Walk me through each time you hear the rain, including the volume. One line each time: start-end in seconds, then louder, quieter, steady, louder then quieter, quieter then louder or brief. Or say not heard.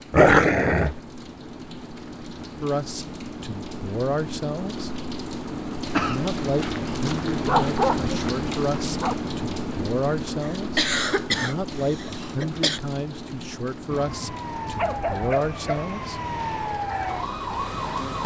0.0-18.2 louder then quieter.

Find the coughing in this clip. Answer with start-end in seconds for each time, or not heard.
5.9-6.3, 10.4-12.8.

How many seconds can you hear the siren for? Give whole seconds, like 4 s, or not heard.
4 s.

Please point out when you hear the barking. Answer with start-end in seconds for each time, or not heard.
0.1-1.0, 6.5-9.2, 13.9-15.8.